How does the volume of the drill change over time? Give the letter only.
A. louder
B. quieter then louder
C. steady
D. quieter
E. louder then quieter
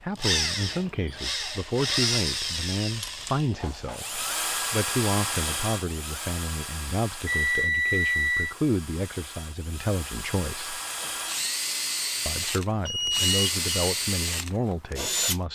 B.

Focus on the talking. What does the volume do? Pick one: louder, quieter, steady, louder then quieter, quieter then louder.
steady.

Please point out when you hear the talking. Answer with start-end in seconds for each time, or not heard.
0.0-10.8, 12.2-15.5.